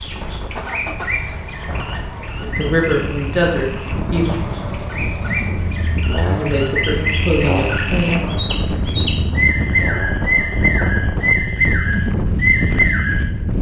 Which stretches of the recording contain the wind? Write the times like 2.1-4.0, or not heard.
0.0-13.5.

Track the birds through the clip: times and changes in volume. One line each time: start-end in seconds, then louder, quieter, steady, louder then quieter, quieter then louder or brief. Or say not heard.
0.0-13.2 louder.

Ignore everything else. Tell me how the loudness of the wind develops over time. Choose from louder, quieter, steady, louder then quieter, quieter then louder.
louder.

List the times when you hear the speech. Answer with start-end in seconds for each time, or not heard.
2.4-4.3, 6.2-8.2.